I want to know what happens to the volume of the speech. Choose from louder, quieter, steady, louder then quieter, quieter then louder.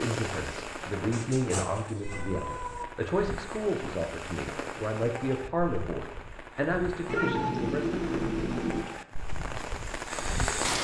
steady.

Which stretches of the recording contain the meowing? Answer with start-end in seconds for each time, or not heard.
1.1-2.9, 7.0-8.8.